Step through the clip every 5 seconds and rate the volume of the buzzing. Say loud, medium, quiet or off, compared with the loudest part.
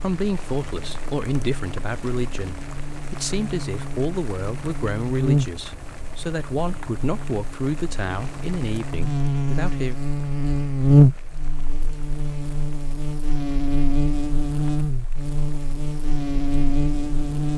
quiet, medium, loud, medium.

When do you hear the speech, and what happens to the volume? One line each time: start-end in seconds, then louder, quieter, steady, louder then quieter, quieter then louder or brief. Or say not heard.
0.0-9.9 steady.